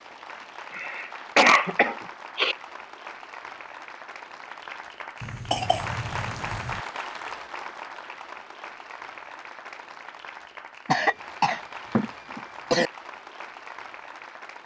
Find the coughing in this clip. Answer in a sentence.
You can hear the coughing from 0.8 to 2.5 s, from 5.2 to 6.8 s and from 10.8 to 12.9 s.